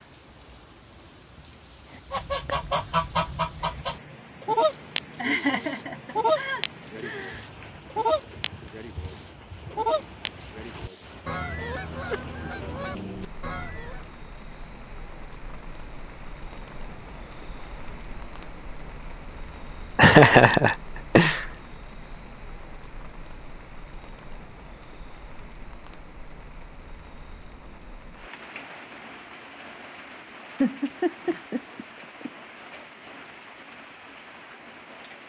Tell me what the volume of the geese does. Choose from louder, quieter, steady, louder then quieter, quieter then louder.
quieter.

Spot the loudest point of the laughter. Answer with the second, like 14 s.
20 s.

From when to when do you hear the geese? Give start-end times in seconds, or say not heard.
2.1-14.1.